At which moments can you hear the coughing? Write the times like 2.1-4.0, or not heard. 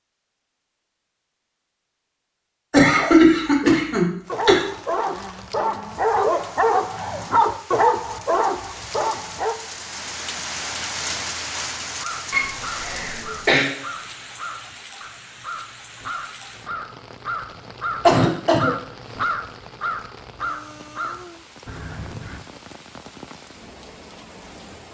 2.7-4.6, 12.3-13.7, 18.0-18.8.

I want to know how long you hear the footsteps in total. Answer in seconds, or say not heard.
not heard.